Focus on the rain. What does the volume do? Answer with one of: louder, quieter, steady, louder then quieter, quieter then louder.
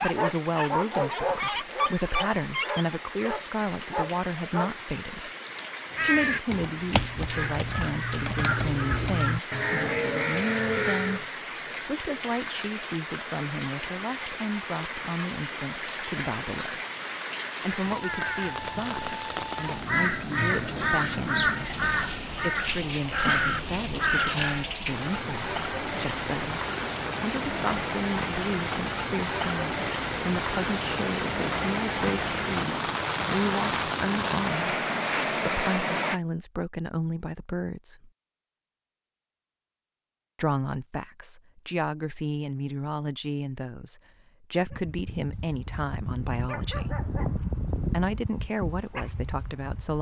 louder.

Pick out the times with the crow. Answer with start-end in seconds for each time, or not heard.
5.9-11.3, 17.9-24.7.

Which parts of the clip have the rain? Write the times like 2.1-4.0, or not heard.
0.0-36.2.